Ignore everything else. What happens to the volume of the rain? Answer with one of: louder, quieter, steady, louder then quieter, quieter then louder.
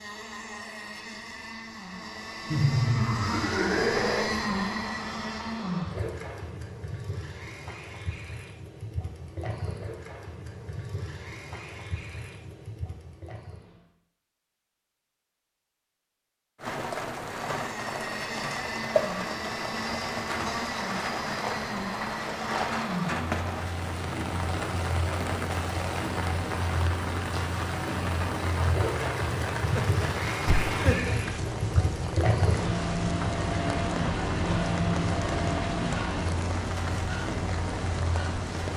steady.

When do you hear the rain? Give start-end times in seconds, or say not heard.
16.6-38.7.